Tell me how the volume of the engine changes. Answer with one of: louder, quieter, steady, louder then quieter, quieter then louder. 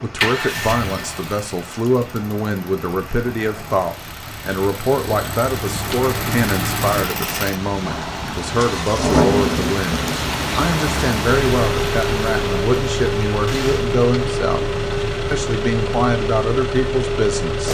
louder.